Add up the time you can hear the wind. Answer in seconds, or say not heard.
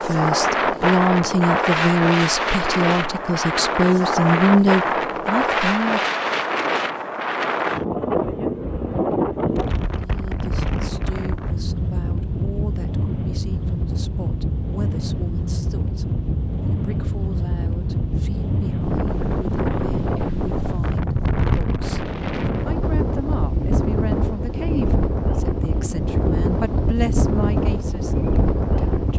29 s.